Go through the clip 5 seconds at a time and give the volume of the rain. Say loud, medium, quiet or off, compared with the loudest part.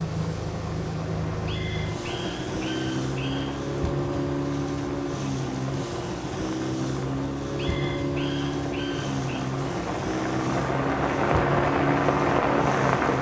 quiet, quiet, loud.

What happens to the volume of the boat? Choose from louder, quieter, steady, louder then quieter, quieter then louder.
steady.